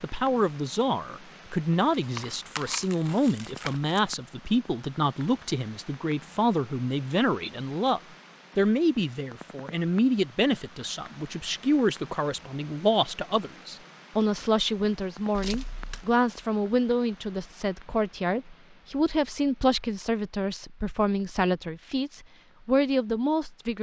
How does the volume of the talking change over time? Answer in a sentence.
The volume of the talking stays about the same.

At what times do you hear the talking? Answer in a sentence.
The talking can be heard from 0.0 to 23.7 s.